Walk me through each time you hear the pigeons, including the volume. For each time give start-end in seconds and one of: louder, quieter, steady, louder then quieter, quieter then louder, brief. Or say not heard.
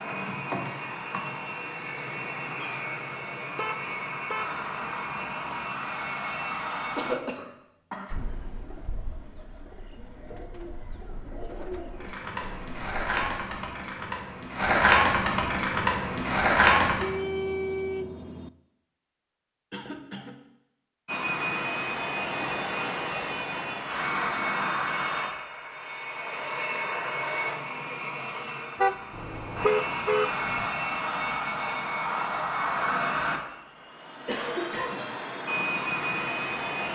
8.1-13.4 louder then quieter.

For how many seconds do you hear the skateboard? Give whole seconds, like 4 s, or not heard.
5 s.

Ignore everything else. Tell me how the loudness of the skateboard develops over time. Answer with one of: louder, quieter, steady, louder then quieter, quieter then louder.
louder.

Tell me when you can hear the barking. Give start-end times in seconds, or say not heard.
not heard.